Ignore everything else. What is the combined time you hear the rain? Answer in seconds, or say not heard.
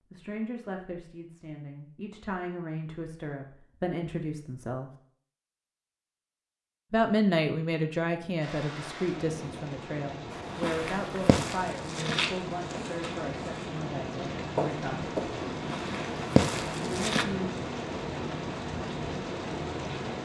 12 s.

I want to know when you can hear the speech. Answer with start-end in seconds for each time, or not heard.
0.1-4.9, 6.9-15.2, 16.8-17.5.